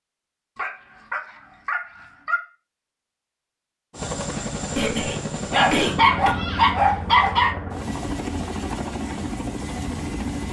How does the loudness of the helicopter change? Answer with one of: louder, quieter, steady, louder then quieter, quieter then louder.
steady.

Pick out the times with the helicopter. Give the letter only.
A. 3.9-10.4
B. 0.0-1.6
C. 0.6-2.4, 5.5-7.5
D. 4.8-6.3
A.